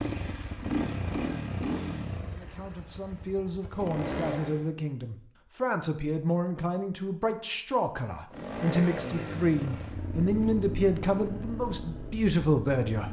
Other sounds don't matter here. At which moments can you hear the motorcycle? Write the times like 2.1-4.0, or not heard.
0.0-4.7, 8.3-13.0.